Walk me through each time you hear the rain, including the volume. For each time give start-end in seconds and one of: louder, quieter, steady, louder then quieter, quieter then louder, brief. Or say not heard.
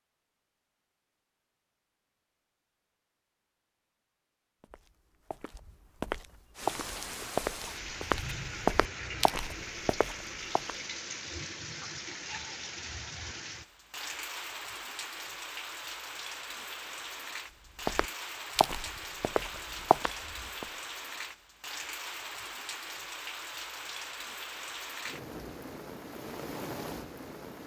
6.5-27.6 steady.